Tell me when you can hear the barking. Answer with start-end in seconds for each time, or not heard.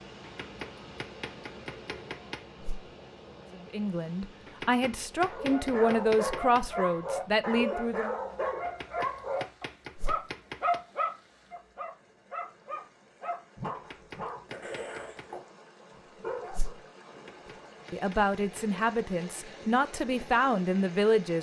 5.2-15.4, 16.1-16.8.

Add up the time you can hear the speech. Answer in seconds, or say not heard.
8 s.